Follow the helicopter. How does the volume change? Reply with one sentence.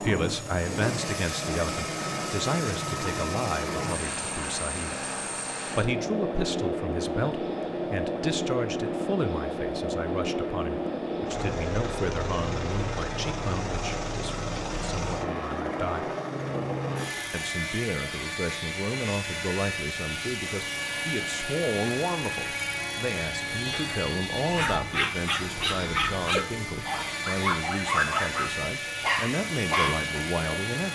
The loudness of the helicopter stays about the same.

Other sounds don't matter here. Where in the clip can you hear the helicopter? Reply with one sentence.
You can hear the helicopter from 0.0 to 30.8 s.